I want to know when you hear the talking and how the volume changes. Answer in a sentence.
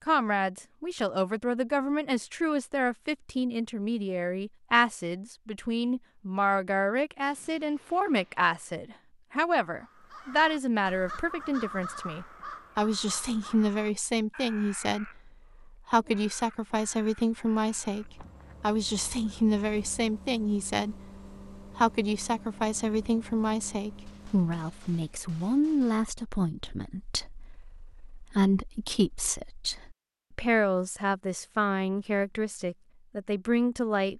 The talking can be heard from 0.1 to 34.1 s, at a steady volume.